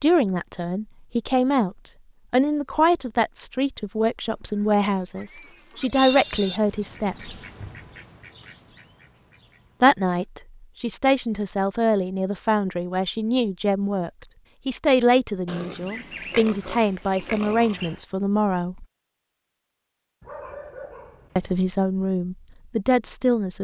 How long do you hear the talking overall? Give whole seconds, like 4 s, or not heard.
19 s.